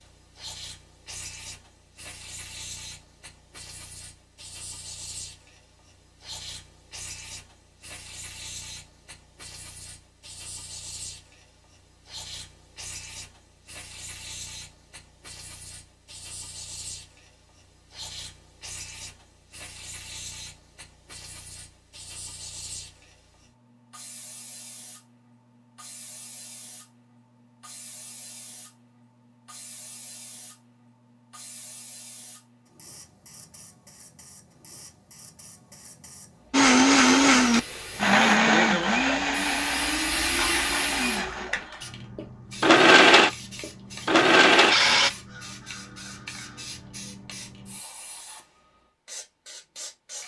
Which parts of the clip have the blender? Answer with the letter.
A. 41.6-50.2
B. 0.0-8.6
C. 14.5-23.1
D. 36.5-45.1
D.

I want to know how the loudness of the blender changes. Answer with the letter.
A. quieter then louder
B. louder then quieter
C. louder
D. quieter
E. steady
A.